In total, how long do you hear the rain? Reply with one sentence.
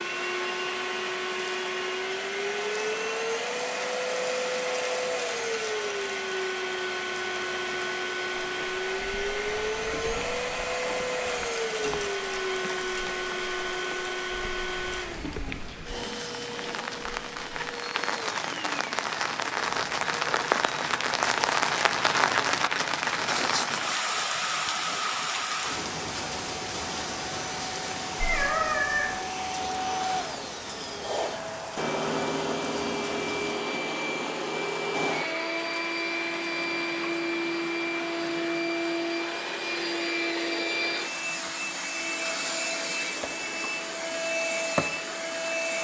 You can hear the rain for 37 seconds altogether.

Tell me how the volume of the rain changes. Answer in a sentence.
The loudness of the rain goes up, then down.